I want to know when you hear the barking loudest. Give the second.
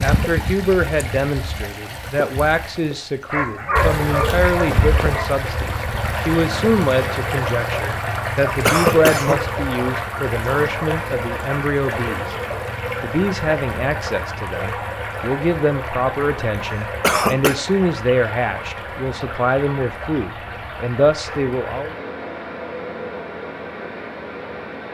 4 s.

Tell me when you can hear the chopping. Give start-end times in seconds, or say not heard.
not heard.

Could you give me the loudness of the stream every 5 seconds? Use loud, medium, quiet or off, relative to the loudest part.
loud, loud, loud, medium, medium.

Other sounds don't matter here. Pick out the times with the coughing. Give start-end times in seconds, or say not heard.
8.7-9.4, 17.0-17.6.